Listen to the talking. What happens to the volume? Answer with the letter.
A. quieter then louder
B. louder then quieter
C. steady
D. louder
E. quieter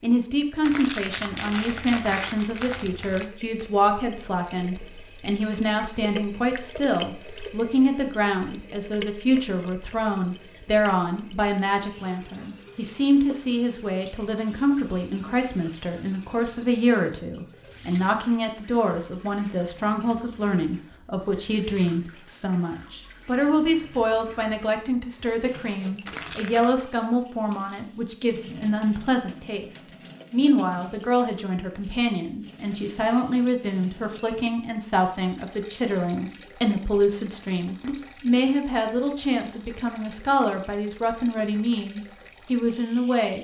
C.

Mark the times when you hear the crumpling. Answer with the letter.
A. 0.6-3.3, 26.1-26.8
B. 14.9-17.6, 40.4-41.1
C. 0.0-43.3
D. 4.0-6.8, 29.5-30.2
A.